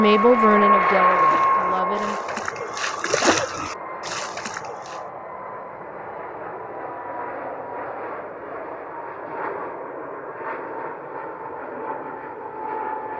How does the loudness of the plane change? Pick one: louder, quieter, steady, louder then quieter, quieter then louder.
quieter.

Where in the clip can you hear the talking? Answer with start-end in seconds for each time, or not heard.
0.0-2.1.